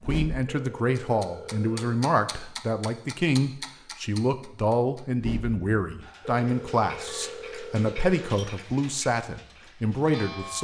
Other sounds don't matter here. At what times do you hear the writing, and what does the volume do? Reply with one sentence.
The writing can't be heard in this clip.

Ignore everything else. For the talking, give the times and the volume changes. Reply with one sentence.
The talking can be heard from 0.1 to 10.5 s, at a steady volume.